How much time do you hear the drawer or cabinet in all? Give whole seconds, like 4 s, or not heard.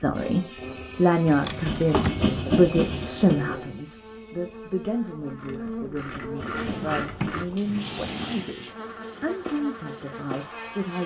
3 s.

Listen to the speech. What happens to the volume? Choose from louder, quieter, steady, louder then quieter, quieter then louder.
quieter.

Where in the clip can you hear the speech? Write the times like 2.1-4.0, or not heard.
0.0-11.0.